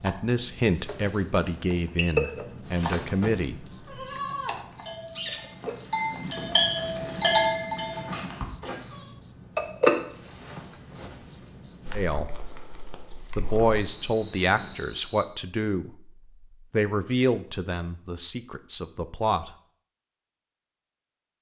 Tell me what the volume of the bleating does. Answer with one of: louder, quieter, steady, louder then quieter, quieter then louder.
louder then quieter.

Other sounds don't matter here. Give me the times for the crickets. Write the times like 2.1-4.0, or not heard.
0.0-15.3.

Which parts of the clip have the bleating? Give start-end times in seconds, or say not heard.
2.6-9.1.